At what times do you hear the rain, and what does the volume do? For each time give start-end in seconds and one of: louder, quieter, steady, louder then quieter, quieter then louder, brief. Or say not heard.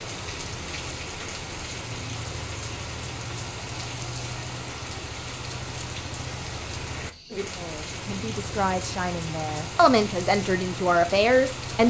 0.0-11.8 steady.